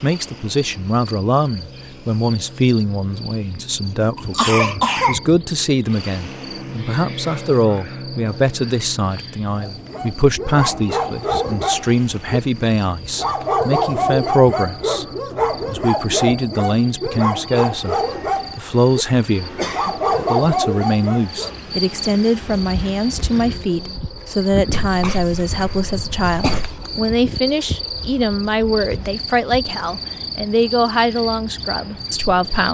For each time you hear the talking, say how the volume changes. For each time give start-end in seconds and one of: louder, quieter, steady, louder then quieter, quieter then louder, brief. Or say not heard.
0.0-15.1 steady
15.7-32.7 steady.